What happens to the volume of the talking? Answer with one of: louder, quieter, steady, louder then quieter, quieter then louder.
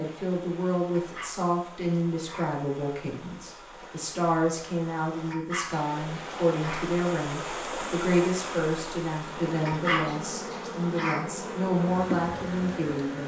steady.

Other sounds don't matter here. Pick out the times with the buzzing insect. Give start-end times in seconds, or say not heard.
9.2-13.2.